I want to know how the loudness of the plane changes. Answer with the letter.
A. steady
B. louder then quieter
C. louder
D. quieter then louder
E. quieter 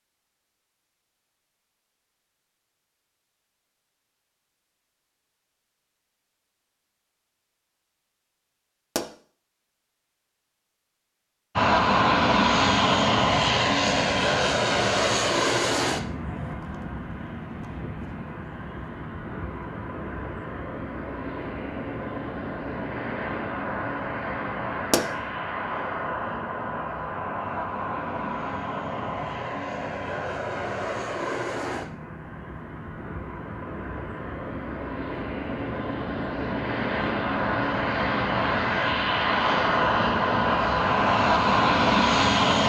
D.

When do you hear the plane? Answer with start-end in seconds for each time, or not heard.
11.6-42.6.